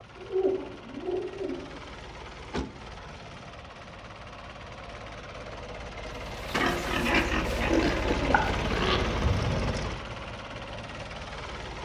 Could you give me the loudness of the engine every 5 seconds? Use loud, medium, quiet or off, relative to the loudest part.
medium, loud, medium.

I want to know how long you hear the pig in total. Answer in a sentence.
You can hear the pig for 3 seconds altogether.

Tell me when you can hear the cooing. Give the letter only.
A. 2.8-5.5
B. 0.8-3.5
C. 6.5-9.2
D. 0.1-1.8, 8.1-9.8
D.